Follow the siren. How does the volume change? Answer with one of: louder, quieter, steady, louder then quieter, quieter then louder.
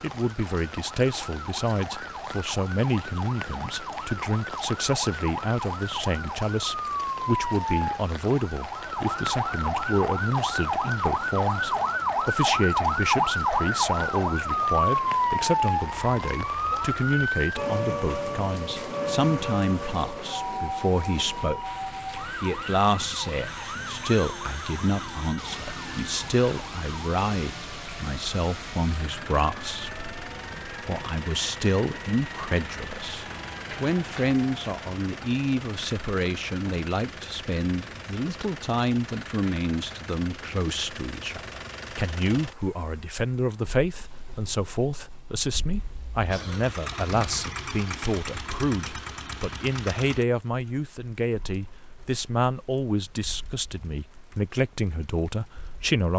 louder then quieter.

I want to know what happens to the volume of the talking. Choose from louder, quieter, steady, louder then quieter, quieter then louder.
steady.